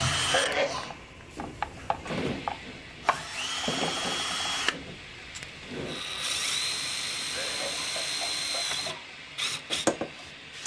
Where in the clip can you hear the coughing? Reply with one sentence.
The coughing can be heard from 0.2 to 0.9 s and from 7.3 to 9.0 s.